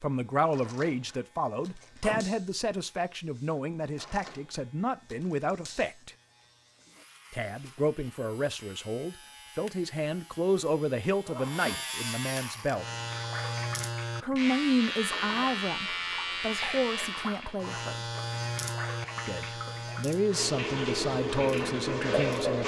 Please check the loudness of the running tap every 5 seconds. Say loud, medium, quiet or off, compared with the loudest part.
off, off, quiet, medium, loud.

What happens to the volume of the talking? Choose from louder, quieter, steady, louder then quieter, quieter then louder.
steady.